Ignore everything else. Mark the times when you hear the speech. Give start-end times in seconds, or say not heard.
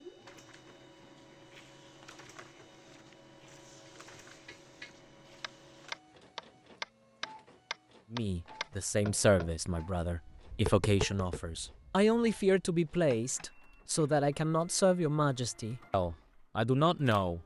8.1-17.4.